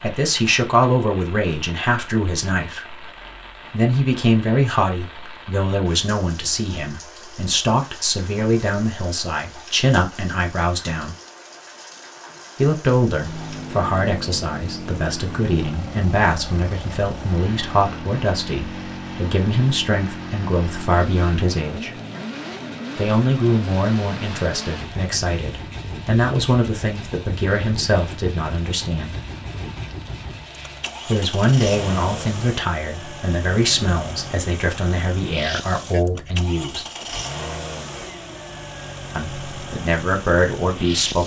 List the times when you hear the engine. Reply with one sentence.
The engine can be heard from 13.2 to 41.2 s.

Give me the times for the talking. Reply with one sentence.
The talking can be heard from 0.0 to 3.0 s, from 3.7 to 11.2 s, from 12.6 to 21.9 s, from 22.9 to 29.1 s, from 31.1 to 36.9 s and from 39.1 to 41.2 s.